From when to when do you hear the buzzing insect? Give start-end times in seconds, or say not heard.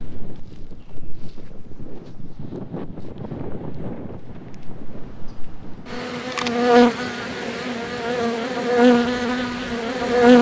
0.0-10.3.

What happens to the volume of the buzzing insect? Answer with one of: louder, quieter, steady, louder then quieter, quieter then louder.
louder.